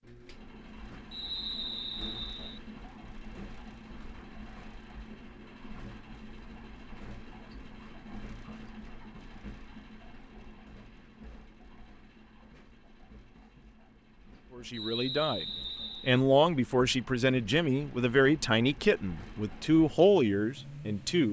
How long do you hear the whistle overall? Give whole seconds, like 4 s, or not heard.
3 s.